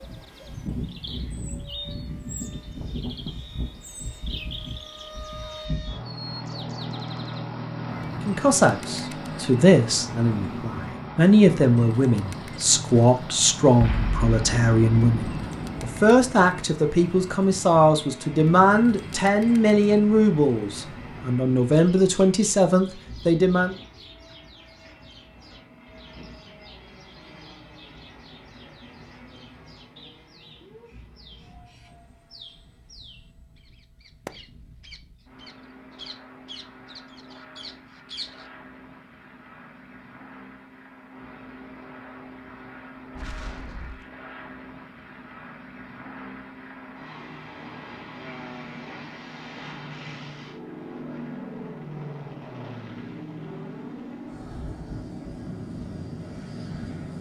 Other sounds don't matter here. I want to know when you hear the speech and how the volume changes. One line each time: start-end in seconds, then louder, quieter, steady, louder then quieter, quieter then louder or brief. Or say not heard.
8.2-23.8 steady.